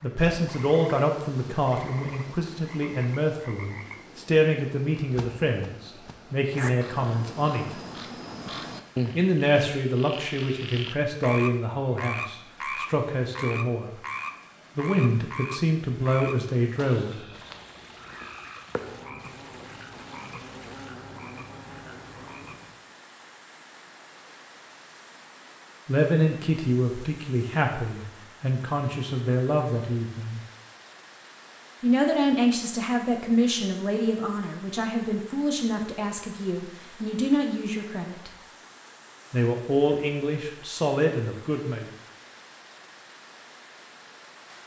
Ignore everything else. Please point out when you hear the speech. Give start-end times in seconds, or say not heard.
0.0-7.8, 9.2-13.9, 14.8-17.1, 25.9-30.4, 31.8-38.3, 39.3-41.9.